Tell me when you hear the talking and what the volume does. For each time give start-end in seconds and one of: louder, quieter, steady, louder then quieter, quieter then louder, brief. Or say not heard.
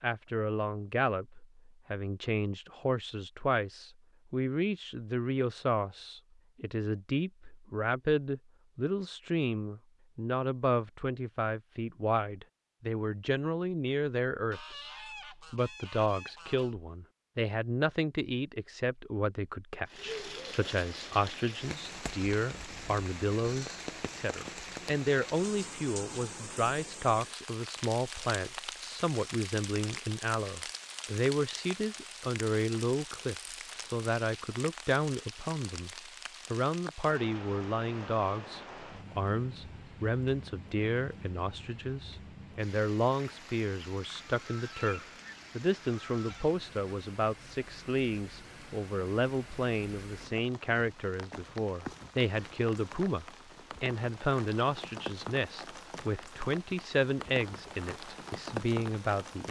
0.0-35.9 steady
36.5-59.4 steady.